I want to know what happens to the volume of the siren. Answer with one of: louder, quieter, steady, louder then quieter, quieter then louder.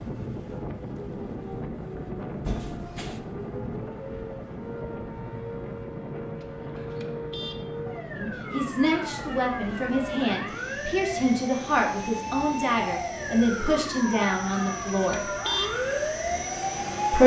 louder.